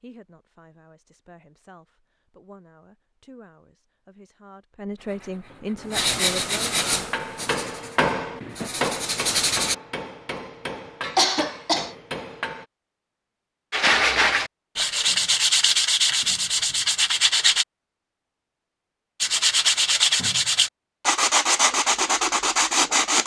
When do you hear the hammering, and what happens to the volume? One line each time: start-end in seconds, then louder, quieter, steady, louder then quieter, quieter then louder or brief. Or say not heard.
6.9-12.7 quieter.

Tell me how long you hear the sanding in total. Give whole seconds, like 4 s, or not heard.
13 s.